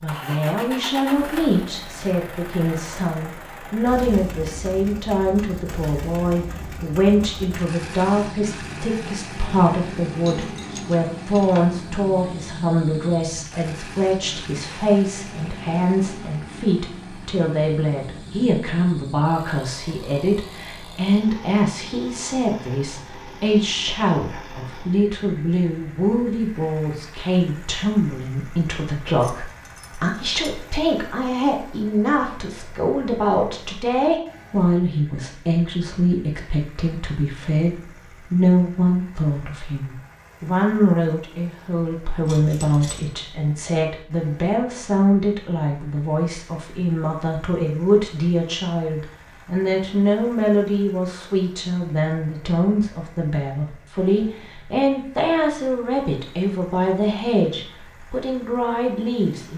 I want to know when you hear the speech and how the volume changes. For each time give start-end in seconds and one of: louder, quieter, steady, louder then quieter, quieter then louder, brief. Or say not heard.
0.0-59.5 steady.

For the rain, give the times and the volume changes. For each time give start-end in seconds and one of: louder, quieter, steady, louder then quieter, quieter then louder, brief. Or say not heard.
not heard.